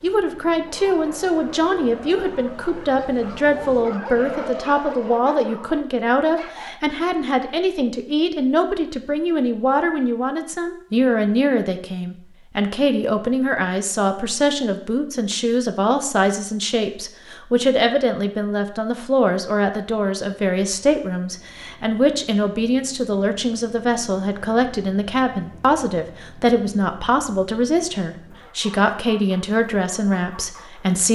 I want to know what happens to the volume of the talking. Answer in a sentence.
The loudness of the talking stays about the same.